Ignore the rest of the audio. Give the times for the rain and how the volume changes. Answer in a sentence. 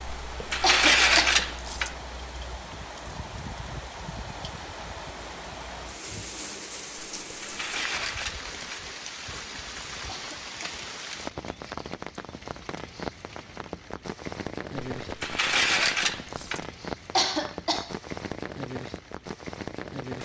The rain can be heard from 0.0 to 20.2 s, at a steady volume.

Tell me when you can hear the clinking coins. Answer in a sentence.
The clinking coins can be heard from 0.1 to 1.9 s, from 7.2 to 8.8 s and from 14.8 to 16.6 s.